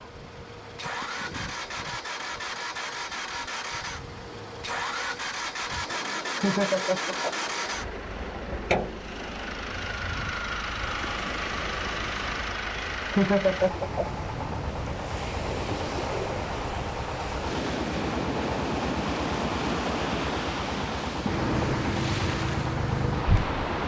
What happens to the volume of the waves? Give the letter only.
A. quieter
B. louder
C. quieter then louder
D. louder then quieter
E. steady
B.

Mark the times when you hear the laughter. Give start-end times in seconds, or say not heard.
6.4-7.5, 13.1-14.1.